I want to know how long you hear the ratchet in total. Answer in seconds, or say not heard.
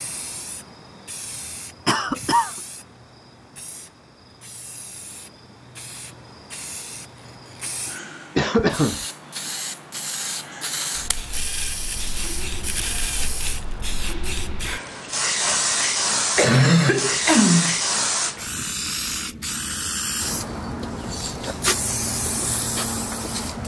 3 s.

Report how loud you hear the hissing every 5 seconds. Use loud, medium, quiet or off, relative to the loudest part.
quiet, quiet, medium, loud, loud.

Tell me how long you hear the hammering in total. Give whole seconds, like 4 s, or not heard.
not heard.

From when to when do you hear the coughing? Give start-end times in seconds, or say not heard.
1.9-2.5, 8.3-9.1, 16.4-17.8.